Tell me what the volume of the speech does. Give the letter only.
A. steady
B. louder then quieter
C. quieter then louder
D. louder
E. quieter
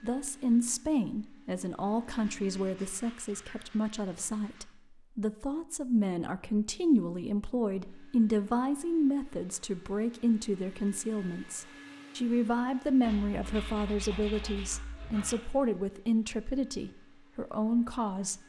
A.